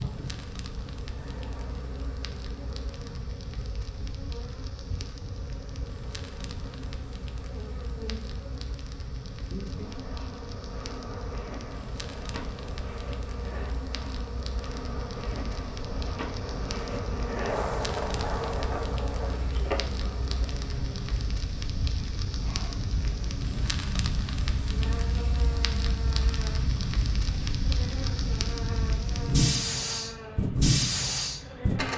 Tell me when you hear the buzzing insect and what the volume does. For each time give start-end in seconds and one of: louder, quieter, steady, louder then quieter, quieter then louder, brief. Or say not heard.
0.0-31.9 louder then quieter.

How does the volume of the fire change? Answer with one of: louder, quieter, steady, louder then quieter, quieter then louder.
louder.